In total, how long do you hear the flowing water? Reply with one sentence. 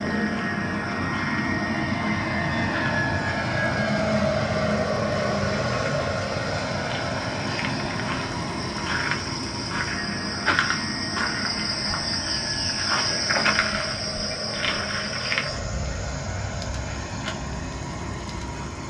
The flowing water can't be heard in this clip.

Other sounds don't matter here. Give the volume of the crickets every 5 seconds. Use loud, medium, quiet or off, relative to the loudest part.
quiet, medium, loud, medium.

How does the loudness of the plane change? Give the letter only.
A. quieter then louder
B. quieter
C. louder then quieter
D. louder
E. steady
B.